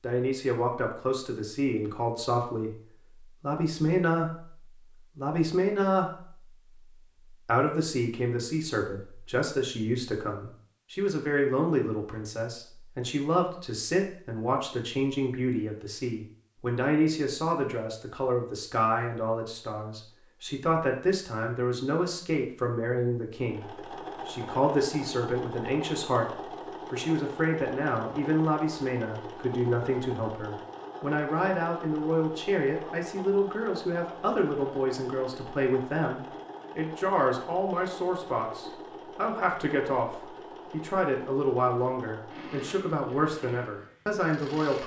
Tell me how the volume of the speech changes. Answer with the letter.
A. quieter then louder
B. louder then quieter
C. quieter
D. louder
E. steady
E.